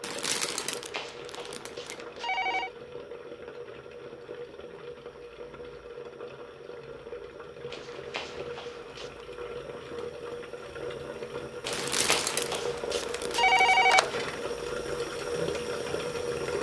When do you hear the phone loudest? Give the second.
14 s.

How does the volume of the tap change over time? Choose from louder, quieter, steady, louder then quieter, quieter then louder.
louder.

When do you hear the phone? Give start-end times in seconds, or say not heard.
0.7-2.7, 7.7-9.2, 11.7-14.3.